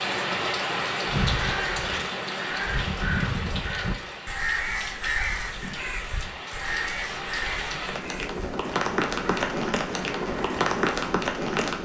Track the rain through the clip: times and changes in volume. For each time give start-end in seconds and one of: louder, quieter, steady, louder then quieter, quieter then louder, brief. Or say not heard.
0.0-11.7 quieter then louder.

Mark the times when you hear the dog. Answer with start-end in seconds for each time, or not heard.
not heard.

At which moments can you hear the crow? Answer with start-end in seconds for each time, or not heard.
1.0-11.2.